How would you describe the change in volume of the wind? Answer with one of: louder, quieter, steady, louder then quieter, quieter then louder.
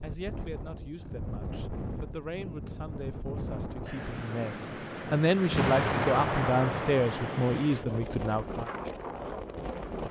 steady.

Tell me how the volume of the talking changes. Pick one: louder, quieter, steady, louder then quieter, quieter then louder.
louder.